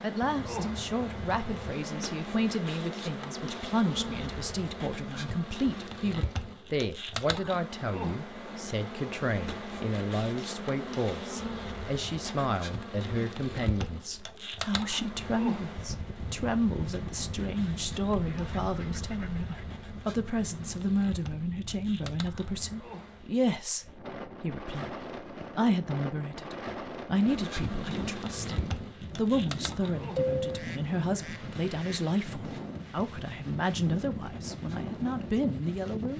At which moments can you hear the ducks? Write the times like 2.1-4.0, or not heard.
0.2-1.8, 17.4-19.9, 30.4-32.0.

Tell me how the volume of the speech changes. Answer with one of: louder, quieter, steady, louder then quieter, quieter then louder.
steady.